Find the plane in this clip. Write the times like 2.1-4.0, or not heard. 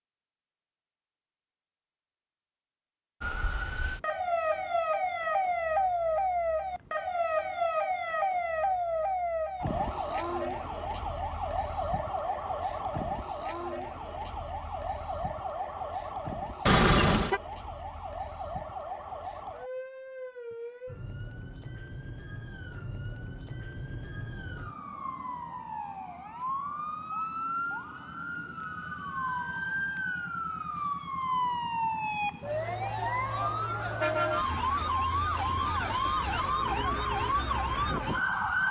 not heard.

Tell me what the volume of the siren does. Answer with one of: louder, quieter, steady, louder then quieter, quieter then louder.
quieter then louder.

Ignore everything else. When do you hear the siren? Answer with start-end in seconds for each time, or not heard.
3.2-38.6.